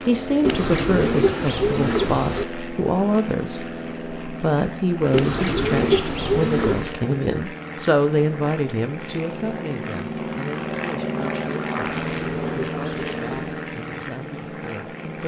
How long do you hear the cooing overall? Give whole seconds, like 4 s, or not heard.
6 s.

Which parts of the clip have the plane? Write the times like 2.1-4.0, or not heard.
0.0-15.2.